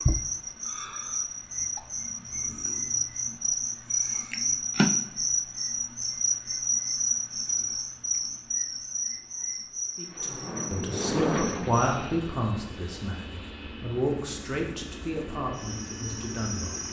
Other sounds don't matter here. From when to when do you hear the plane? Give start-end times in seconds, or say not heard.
9.9-16.8.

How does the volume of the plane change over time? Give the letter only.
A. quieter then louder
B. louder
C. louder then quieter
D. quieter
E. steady
D.